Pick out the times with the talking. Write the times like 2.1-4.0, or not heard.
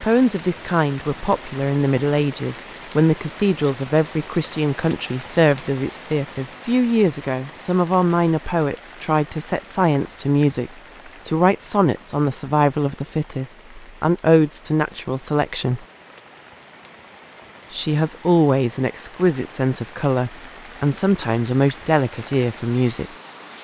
0.0-15.8, 17.7-23.1.